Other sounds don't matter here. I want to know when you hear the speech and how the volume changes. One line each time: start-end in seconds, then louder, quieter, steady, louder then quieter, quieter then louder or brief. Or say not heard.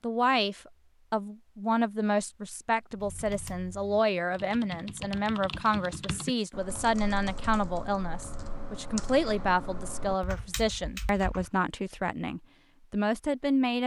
0.0-13.8 steady.